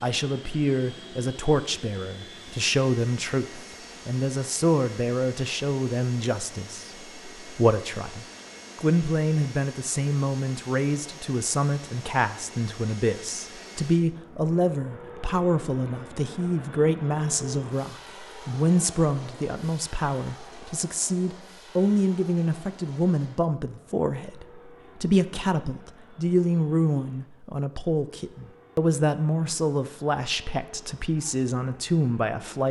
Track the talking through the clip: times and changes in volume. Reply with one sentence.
The talking can be heard from 0.0 to 32.6 s, at a steady volume.